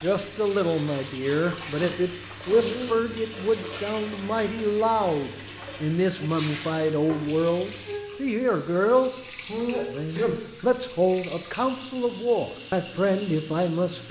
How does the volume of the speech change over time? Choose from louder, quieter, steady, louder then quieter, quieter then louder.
steady.